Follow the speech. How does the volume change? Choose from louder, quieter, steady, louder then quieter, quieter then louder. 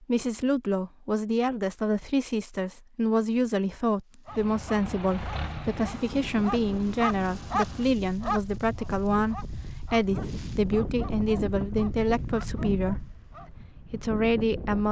steady.